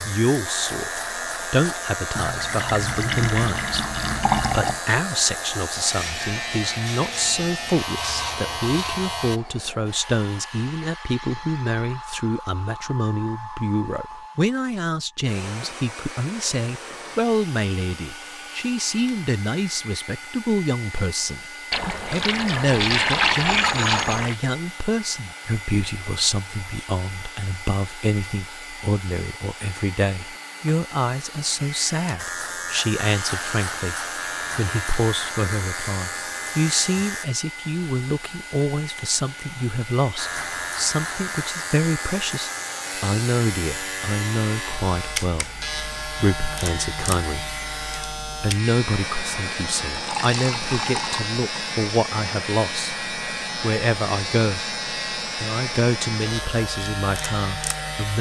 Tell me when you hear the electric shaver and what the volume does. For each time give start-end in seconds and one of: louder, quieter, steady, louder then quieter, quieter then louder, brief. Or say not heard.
0.0-9.4 steady
32.1-37.2 steady
40.1-58.1 steady.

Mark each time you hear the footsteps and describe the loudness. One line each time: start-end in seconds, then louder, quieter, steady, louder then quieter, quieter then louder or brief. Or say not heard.
not heard.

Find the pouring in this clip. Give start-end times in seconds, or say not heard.
2.1-4.8, 21.7-24.4, 49.9-51.2.